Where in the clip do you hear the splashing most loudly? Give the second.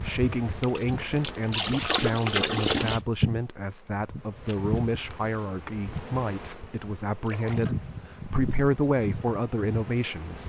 3 s.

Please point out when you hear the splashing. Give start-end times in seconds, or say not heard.
0.6-3.0, 7.2-7.8.